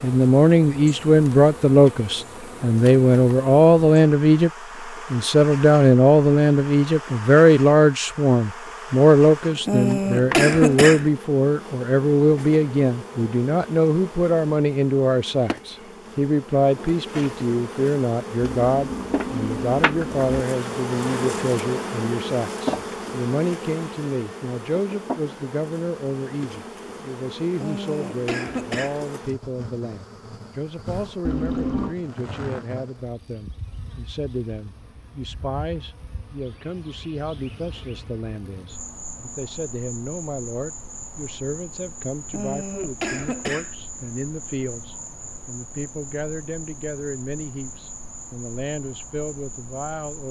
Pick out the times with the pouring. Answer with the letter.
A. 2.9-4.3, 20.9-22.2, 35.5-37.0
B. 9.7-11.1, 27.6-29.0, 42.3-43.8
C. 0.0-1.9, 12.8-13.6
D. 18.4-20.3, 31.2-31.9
D.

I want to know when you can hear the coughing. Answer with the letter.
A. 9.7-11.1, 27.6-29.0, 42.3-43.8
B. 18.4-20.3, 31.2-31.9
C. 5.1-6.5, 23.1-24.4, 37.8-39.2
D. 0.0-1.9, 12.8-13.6
A.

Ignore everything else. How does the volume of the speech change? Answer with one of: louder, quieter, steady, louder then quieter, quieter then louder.
quieter.